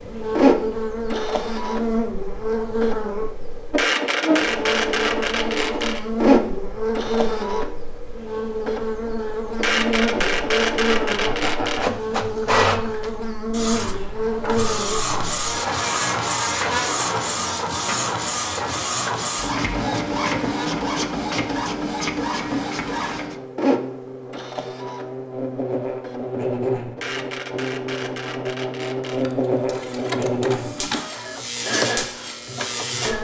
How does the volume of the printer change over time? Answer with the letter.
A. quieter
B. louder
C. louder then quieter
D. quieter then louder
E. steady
A.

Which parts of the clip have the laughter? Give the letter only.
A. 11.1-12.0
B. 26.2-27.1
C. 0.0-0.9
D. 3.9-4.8
A.